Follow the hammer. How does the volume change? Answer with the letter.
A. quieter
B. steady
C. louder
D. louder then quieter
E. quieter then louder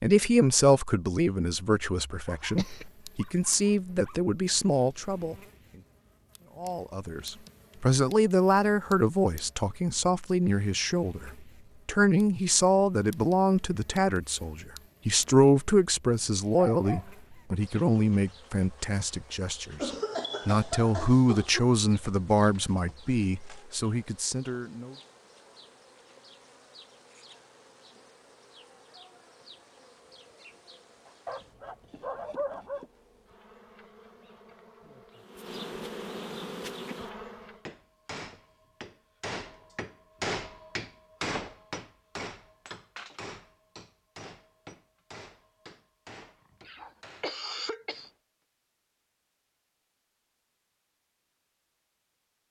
D.